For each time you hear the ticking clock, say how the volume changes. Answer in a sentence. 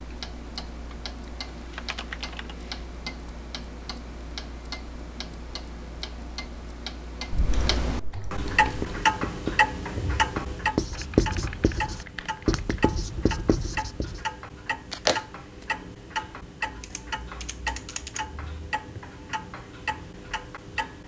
The ticking clock can be heard from 0.0 to 21.0 s, getting louder then quieter.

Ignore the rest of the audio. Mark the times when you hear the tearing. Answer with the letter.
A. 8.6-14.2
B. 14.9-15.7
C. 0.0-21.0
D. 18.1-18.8
B.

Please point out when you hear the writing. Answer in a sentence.
The writing can be heard from 8.6 to 14.2 s.